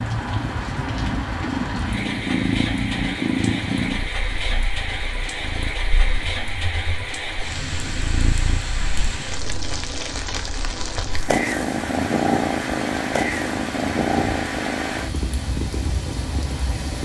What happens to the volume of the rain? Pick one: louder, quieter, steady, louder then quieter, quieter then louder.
steady.